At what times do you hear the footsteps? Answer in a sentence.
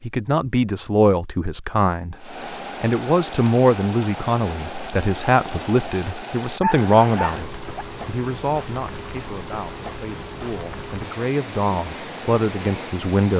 The footsteps can't be heard in this clip.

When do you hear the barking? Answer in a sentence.
You can hear the barking from 6.6 to 7.8 s.